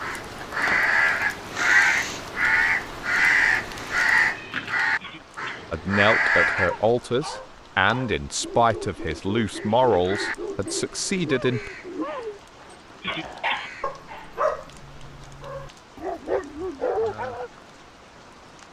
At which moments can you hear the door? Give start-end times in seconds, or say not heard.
not heard.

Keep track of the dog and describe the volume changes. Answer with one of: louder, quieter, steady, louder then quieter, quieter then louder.
louder.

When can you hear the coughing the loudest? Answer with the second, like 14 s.
13 s.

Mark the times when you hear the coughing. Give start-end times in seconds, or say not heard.
5.0-5.7, 13.0-13.7.